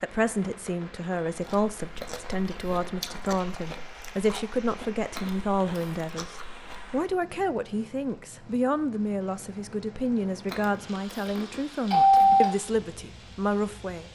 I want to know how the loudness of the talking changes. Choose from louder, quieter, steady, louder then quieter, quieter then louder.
steady.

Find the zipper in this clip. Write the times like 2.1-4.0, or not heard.
not heard.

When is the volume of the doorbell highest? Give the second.
12 s.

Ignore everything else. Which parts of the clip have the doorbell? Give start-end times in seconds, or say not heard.
2.0-2.8, 5.2-6.0, 10.5-12.5.